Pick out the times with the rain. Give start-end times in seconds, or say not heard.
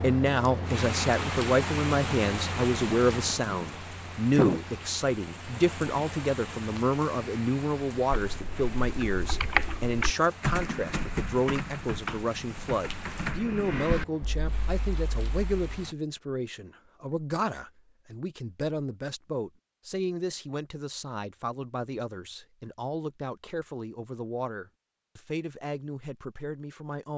0.0-15.9.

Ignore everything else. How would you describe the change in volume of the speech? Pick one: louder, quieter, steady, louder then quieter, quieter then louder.
quieter.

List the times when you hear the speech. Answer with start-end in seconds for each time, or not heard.
0.0-27.1.